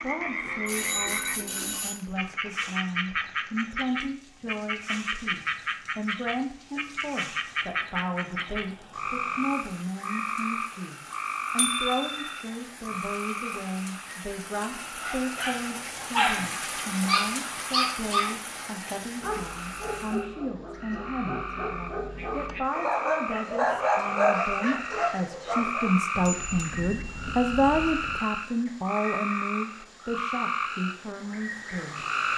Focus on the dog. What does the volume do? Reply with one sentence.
The volume of the dog goes down, then up.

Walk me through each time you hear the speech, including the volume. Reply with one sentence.
You can hear the speech from 0.0 to 32.0 s, getting louder.